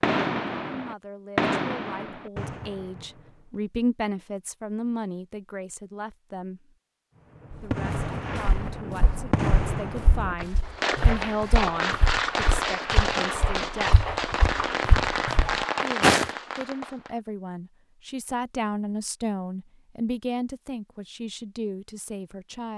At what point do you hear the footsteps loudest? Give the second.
16 s.